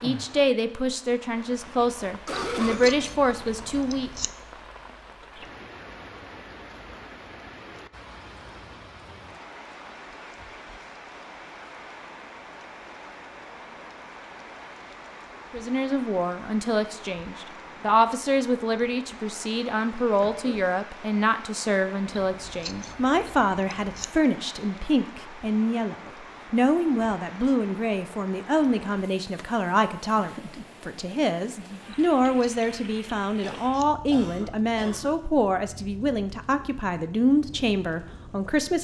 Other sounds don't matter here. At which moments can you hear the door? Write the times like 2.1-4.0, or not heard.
not heard.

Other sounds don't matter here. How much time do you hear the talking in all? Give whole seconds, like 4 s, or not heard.
27 s.